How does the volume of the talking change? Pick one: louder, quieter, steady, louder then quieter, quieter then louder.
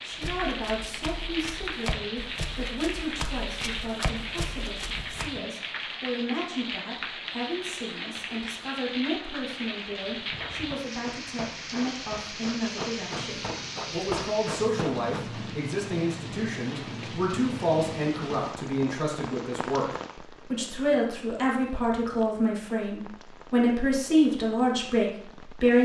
louder.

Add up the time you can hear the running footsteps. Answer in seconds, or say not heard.
10 s.